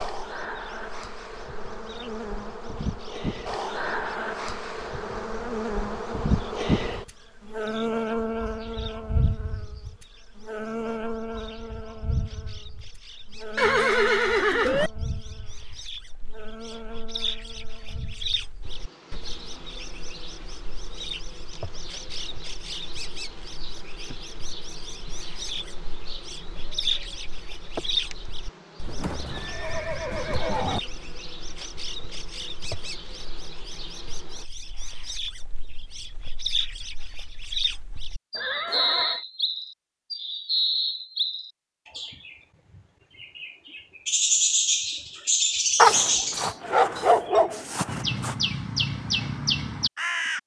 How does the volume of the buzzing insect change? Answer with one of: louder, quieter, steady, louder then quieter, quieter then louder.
quieter.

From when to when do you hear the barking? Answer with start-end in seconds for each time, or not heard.
45.8-48.4.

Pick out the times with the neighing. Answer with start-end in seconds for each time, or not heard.
13.6-14.9, 28.8-30.8, 38.4-39.2.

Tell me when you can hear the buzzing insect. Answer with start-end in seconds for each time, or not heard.
0.0-34.5.